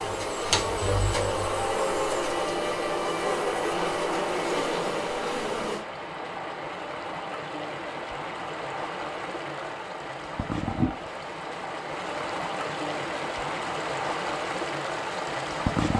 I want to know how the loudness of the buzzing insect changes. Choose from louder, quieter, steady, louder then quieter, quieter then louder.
steady.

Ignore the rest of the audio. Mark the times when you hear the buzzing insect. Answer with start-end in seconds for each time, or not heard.
0.0-5.8.